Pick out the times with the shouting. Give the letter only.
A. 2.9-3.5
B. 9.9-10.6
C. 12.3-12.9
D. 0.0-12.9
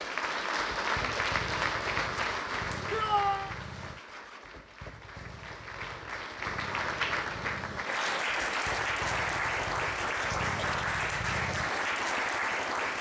A.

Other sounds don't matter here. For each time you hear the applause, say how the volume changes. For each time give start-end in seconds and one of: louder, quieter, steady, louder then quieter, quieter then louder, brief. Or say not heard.
0.0-12.9 quieter then louder.